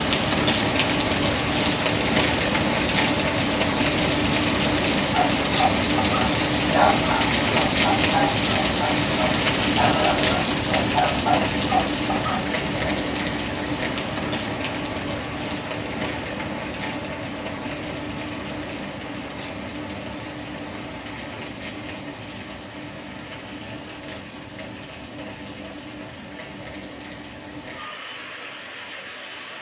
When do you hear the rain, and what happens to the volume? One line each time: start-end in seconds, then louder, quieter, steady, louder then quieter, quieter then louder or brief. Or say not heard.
0.0-29.5 quieter.